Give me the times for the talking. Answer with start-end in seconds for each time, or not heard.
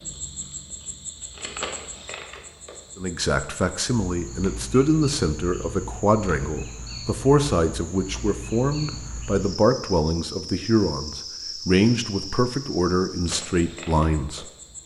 3.0-14.4.